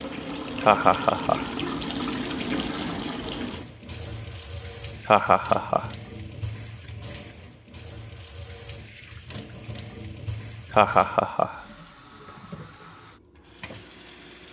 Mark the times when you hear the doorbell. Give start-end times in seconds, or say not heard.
not heard.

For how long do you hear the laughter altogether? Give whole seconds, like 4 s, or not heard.
3 s.